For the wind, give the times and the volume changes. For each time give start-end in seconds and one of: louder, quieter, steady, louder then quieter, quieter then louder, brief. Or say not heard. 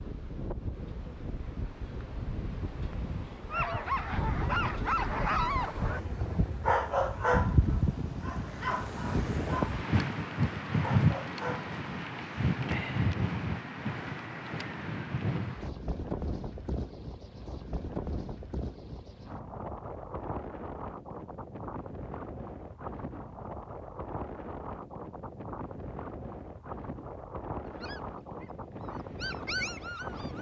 0.0-30.3 louder then quieter.